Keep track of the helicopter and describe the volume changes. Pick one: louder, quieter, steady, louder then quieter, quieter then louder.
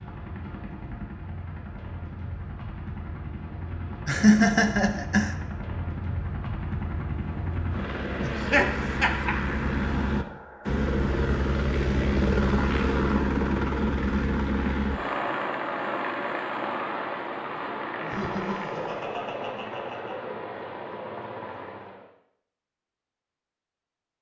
louder then quieter.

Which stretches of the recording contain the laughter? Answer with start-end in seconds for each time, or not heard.
4.0-5.3, 8.2-9.3, 18.0-20.1.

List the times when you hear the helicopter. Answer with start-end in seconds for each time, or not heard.
0.0-22.1.